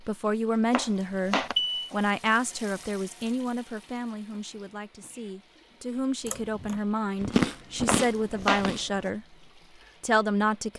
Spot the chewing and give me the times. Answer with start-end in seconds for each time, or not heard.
7.2-8.9.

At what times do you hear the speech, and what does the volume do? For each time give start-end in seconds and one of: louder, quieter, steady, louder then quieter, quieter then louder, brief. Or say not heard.
0.0-9.2 quieter then louder
10.0-10.7 brief.